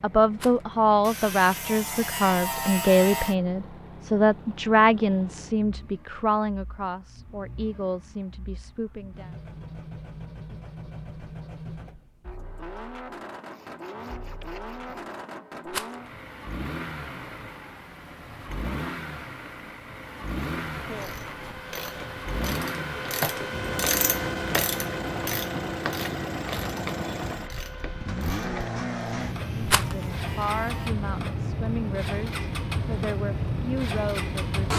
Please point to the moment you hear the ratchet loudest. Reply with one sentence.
The volume of the ratchet peaks at 24 seconds.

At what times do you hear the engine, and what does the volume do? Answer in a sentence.
The engine can be heard from 0.0 to 34.7 s, getting louder.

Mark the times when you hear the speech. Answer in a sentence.
You can hear the speech from 0.0 to 9.3 s and from 29.6 to 34.7 s.